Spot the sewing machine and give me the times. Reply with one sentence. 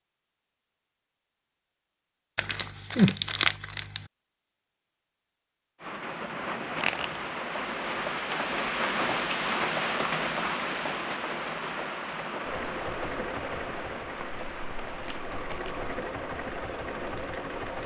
The sewing machine can be heard from 12.4 to 17.8 s.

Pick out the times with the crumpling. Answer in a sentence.
You can hear the crumpling from 2.4 to 4.0 s, from 6.8 to 7.3 s and from 14.4 to 15.9 s.